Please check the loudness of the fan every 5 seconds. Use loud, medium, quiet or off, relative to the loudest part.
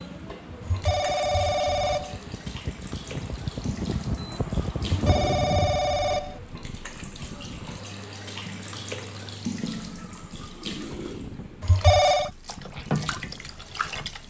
loud, loud, medium.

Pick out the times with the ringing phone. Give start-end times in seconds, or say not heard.
0.6-2.2, 4.8-6.4, 11.6-12.3.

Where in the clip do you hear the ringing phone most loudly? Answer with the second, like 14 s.
12 s.